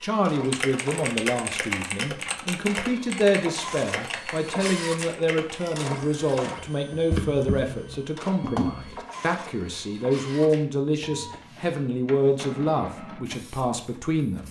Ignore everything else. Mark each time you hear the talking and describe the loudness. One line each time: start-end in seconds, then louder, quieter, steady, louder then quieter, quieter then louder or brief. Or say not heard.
0.0-14.4 steady.